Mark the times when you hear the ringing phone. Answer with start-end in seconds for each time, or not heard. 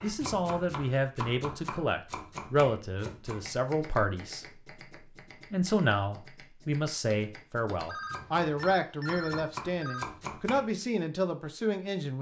7.8-10.1.